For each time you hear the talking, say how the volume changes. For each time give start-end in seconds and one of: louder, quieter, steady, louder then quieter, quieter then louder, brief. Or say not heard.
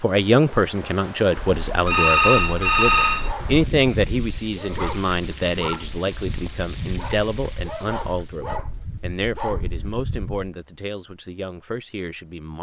0.0-12.5 quieter.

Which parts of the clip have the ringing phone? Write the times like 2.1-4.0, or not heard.
1.4-3.4.